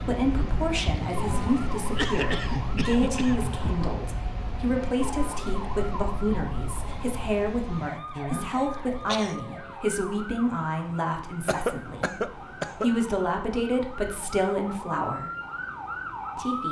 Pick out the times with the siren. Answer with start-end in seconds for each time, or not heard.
0.1-16.6.